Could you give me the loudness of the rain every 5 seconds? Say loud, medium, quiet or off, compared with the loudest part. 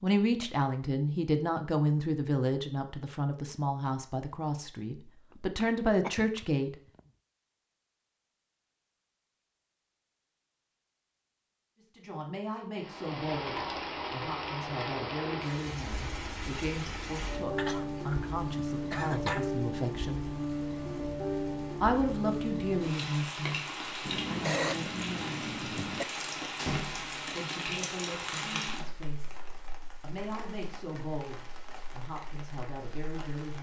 off, off, loud, loud, loud, loud, quiet.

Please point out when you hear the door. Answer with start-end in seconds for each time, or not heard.
26.6-27.3.